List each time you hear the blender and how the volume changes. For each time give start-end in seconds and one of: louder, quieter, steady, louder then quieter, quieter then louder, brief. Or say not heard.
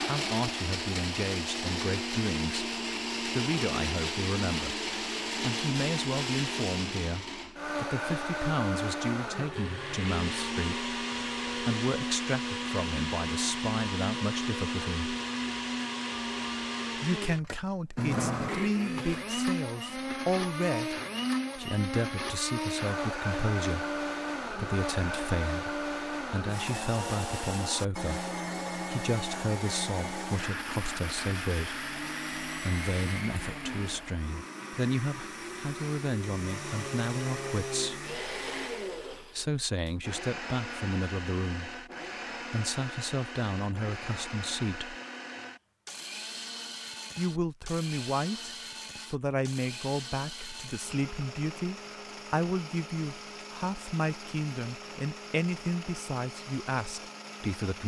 0.0-57.8 quieter.